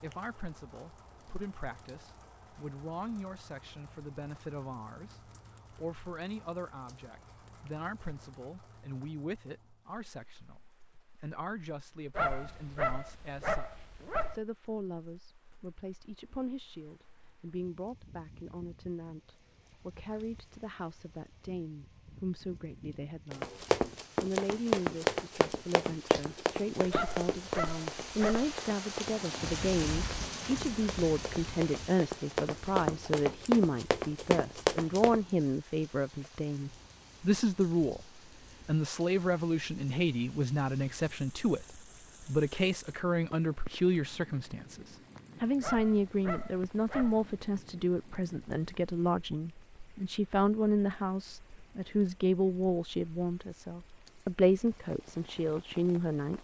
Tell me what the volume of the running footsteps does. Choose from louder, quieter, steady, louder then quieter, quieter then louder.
quieter then louder.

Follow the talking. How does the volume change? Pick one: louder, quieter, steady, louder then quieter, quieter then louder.
louder.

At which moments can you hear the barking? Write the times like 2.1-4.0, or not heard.
12.2-14.3, 26.9-28.5, 45.6-47.3.